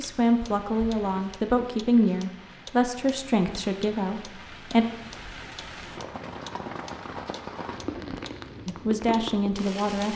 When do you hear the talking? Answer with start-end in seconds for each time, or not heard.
0.0-4.8, 8.7-10.1.